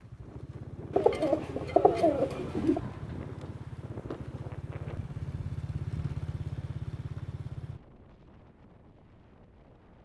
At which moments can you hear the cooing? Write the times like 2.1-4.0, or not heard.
0.9-2.8.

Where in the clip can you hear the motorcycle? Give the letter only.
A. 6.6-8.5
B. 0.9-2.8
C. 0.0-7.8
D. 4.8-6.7
C.